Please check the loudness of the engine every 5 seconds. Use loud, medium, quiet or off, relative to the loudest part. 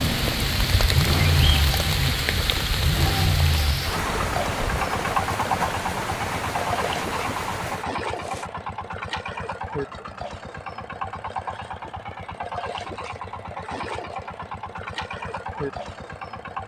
loud, loud, medium, medium.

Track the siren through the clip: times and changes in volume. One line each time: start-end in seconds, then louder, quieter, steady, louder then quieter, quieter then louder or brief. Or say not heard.
not heard.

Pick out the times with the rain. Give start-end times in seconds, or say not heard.
0.0-8.5.